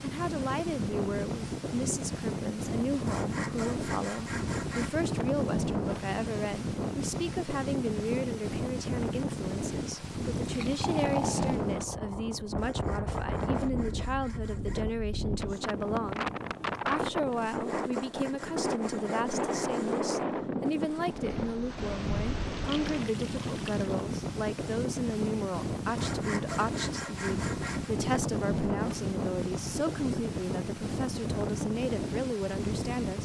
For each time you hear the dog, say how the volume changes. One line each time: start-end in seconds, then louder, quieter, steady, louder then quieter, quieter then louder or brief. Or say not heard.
not heard.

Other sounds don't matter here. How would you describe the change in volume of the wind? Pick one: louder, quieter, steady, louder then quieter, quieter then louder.
steady.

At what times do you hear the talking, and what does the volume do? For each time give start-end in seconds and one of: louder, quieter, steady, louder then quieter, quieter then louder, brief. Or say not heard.
0.0-16.2 steady
16.9-33.2 steady.